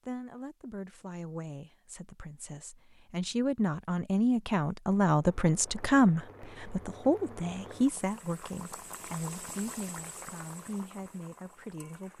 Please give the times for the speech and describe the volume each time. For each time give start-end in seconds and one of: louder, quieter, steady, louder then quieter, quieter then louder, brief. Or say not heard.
0.1-12.1 louder then quieter.